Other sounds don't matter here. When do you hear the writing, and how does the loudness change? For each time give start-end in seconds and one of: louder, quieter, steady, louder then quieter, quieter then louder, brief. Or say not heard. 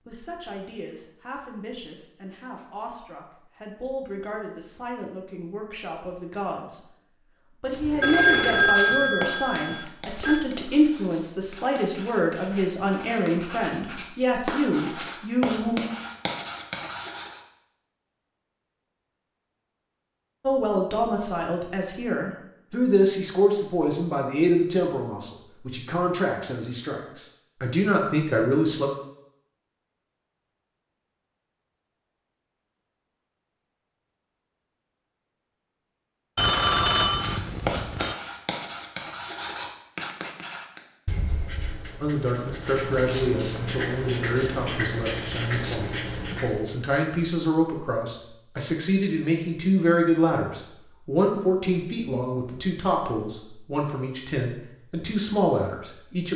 7.7-17.4 quieter then louder
37.0-46.8 quieter then louder.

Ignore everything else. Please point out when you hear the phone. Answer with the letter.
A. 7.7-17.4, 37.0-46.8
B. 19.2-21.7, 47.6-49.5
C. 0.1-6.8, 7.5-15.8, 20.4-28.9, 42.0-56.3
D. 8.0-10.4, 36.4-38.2
D.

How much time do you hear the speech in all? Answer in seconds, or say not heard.
38 s.